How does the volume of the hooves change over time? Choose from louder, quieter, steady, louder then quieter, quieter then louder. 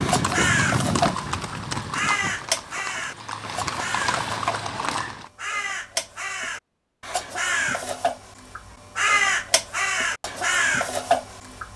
quieter then louder.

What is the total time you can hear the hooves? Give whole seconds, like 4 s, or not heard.
5 s.